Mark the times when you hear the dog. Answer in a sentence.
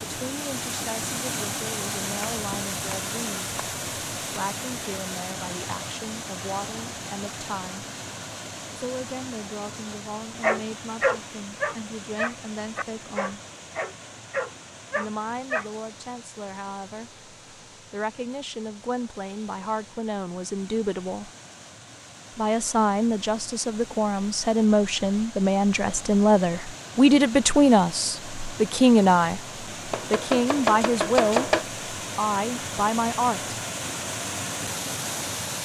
The dog can be heard from 10.4 to 15.7 s.